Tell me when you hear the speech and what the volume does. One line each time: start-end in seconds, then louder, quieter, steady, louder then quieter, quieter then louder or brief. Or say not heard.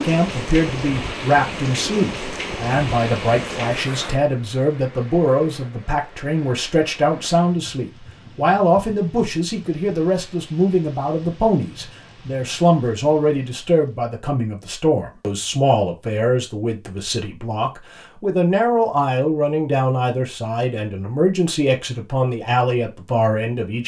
0.0-23.8 steady.